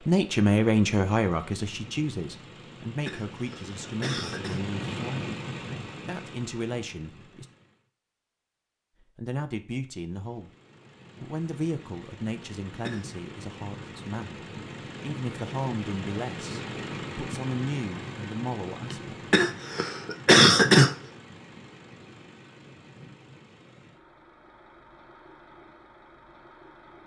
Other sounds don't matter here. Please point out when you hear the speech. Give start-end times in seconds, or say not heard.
0.1-5.3, 6.0-7.5, 9.0-10.5, 11.2-19.2.